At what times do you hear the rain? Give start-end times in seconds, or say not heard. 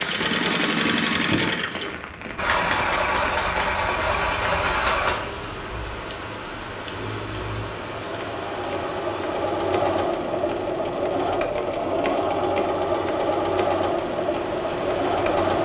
0.0-15.6.